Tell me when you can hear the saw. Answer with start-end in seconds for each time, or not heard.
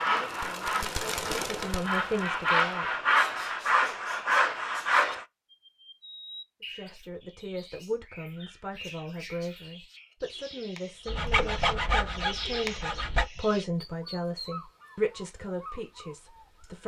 0.0-5.2, 11.1-13.3.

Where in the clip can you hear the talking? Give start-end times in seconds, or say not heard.
0.1-3.0, 6.8-16.8.